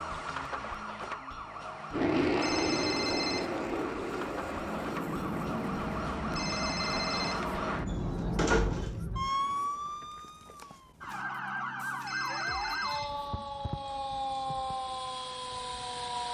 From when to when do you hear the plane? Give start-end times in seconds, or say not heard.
1.9-8.9.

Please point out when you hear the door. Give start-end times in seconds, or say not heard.
7.8-8.9.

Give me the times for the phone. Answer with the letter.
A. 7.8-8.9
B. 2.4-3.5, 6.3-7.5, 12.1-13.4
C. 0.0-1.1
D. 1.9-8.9
B.